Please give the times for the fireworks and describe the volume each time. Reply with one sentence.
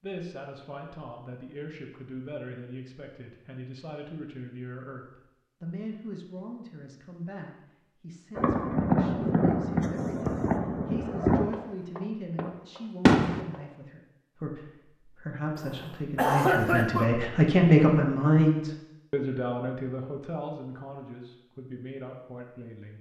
The fireworks can be heard from 8.3 to 13.6 s, getting quieter then louder.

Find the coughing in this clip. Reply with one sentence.
The coughing can be heard from 15.6 to 17.1 s.